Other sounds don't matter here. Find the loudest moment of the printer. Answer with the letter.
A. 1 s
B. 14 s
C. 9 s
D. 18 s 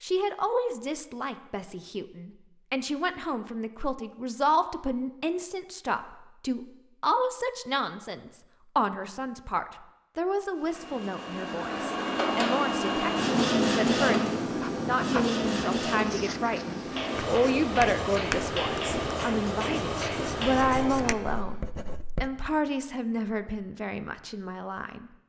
B.